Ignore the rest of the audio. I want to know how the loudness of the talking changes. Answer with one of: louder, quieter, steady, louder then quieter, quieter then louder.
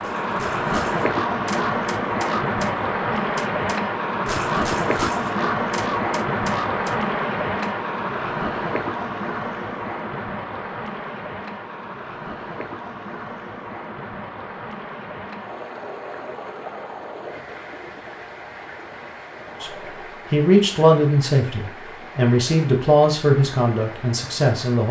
quieter.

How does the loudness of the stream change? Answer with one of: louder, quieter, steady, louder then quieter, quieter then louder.
quieter.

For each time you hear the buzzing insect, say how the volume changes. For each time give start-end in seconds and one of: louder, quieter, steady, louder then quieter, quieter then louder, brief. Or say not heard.
not heard.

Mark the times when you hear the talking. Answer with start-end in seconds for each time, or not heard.
19.6-24.8.